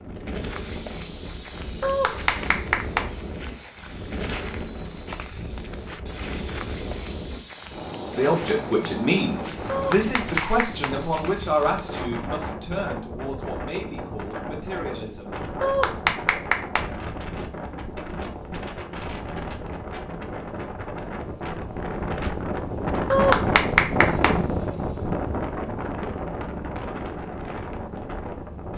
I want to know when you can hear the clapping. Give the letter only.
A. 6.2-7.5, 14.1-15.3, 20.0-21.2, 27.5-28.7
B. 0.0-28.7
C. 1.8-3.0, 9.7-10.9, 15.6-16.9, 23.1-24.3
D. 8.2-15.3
C.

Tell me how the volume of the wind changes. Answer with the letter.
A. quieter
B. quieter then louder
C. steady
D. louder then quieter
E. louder
E.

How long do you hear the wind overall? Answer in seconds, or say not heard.
29 s.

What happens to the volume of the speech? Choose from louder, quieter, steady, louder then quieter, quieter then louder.
quieter.